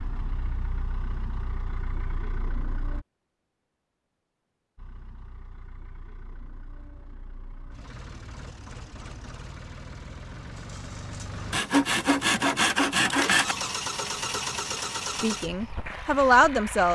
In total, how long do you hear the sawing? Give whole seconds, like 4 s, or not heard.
2 s.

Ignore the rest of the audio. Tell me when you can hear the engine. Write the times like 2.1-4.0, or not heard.
0.0-3.0, 4.8-16.8.